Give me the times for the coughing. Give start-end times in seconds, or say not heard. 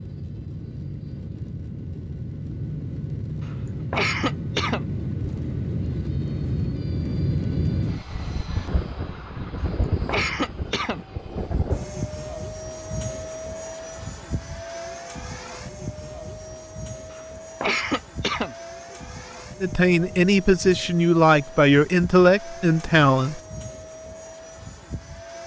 3.5-5.3, 9.6-11.0, 17.1-19.0.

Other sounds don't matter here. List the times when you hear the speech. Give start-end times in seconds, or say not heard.
19.6-23.4.